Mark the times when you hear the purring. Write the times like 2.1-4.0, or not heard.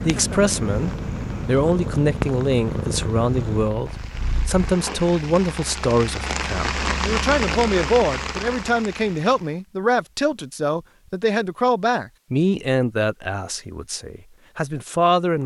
0.0-4.8.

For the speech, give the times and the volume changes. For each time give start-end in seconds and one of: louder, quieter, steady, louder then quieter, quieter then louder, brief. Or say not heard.
0.0-15.4 steady.